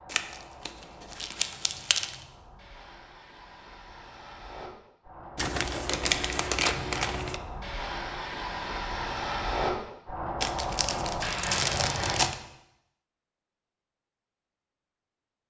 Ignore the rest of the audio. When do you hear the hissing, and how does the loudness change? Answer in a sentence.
The hissing can be heard from 0.0 to 12.3 s, getting louder.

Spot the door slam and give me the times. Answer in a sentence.
The door slam can't be heard in this clip.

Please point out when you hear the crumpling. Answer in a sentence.
The crumpling can be heard from 0.1 to 2.1 s, from 5.3 to 7.4 s and from 10.4 to 12.3 s.